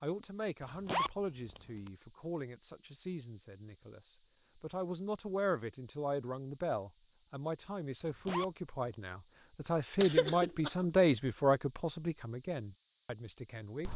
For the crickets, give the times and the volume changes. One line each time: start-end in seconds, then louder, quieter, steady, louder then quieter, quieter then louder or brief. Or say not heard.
0.0-13.9 steady.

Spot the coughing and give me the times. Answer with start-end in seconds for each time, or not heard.
9.9-10.8.